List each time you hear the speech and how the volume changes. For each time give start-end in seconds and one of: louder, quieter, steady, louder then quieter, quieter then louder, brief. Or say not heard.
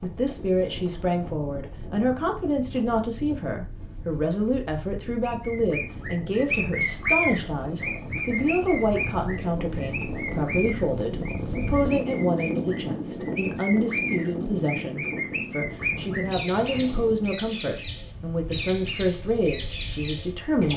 0.0-20.7 steady.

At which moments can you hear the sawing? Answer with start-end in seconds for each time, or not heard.
not heard.